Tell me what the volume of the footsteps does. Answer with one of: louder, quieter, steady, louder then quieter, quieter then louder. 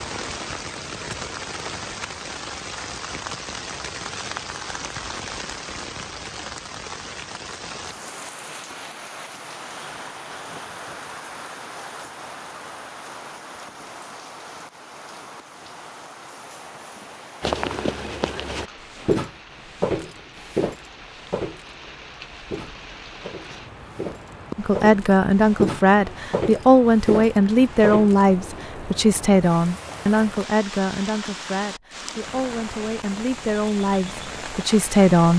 quieter then louder.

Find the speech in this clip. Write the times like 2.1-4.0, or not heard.
24.6-35.3.